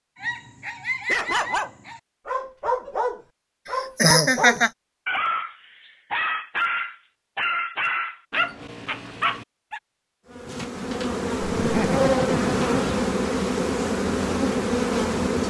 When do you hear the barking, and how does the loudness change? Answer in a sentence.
You can hear the barking from 0.2 to 9.8 s, at a steady volume.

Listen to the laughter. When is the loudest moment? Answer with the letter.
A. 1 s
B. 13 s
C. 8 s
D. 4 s
D.